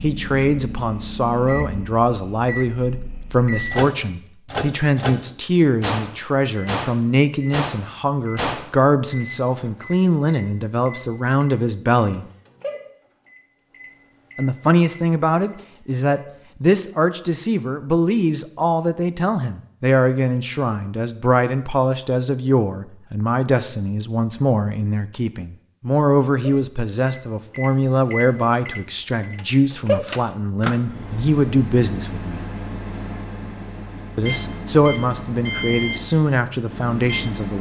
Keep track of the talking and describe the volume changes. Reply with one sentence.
The loudness of the talking stays about the same.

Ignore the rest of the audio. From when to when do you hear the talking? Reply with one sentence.
The talking can be heard from 0.0 to 12.2 s, from 14.3 to 32.5 s and from 34.1 to 37.5 s.